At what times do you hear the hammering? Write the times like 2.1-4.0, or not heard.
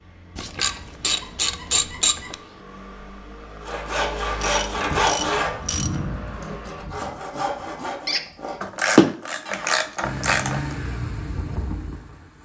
not heard.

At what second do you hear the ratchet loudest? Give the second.
9 s.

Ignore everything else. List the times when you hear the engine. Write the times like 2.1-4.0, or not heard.
0.0-6.8, 10.0-12.4.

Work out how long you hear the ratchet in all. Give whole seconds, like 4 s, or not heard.
6 s.